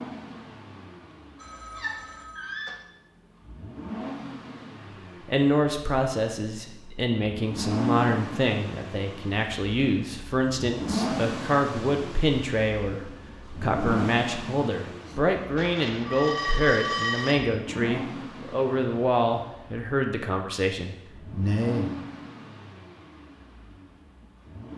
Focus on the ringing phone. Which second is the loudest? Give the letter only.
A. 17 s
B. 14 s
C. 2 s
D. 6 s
A.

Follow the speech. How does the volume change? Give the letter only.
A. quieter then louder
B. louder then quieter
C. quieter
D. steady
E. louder
D.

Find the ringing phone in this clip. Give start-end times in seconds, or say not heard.
1.4-2.8, 15.6-17.4.